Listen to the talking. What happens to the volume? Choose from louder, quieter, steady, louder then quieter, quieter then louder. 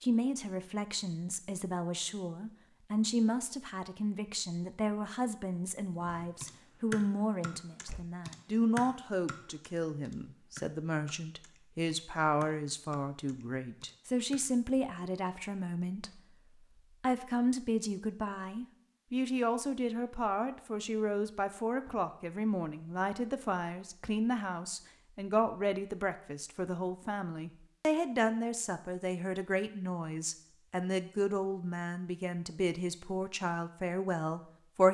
steady.